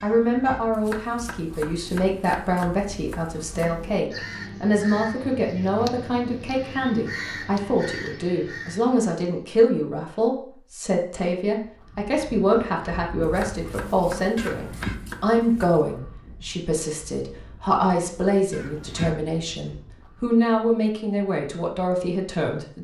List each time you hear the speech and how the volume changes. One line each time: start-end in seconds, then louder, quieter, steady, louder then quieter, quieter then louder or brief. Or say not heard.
0.0-22.7 steady.